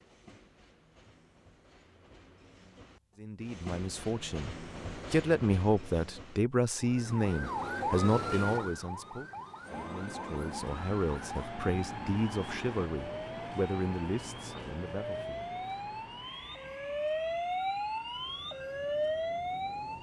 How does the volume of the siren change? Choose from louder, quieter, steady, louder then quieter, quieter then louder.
quieter then louder.